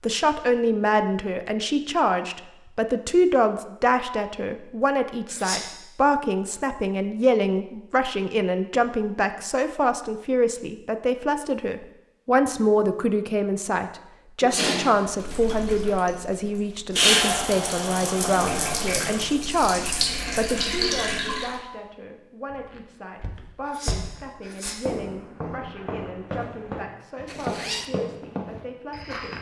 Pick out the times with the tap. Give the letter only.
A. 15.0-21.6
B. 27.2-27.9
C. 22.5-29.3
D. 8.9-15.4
A.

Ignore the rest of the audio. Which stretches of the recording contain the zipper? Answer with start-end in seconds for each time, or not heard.
27.2-27.9.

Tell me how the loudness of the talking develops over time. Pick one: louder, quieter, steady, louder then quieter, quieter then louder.
quieter.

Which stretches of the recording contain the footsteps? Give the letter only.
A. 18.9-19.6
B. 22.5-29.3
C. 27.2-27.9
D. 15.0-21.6
B.